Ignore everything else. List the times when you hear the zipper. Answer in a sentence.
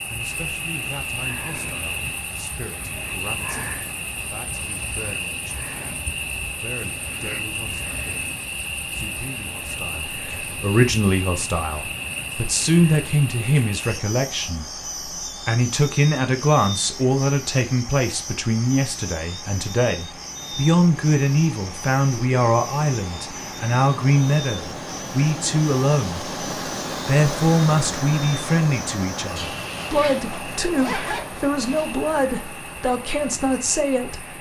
You can hear the zipper from 29.4 to 32.0 s.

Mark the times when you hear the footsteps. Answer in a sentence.
You can't hear the footsteps here.